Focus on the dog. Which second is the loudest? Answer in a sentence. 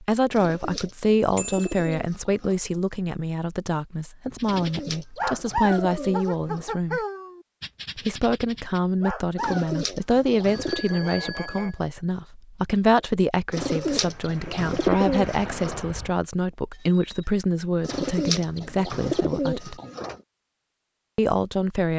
The volume of the dog peaks at 6 seconds.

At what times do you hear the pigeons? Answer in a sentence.
The pigeons can be heard from 0.3 to 2.6 s, from 4.4 to 6.8 s, from 9.3 to 10.9 s, from 13.5 to 15.8 s and from 17.9 to 20.2 s.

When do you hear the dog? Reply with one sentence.
The dog can be heard from 4.4 to 9.8 s.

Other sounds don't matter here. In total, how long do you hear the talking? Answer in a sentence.
The talking can be heard for 20 seconds in total.